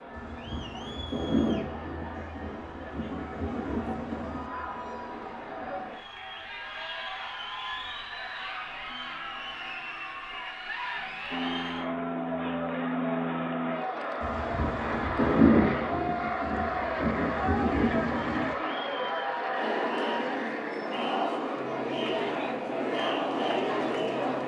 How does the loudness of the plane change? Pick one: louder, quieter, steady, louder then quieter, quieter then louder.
quieter.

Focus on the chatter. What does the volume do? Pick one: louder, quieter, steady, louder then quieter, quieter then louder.
louder.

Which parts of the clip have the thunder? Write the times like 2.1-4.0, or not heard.
0.1-4.5, 14.2-18.6.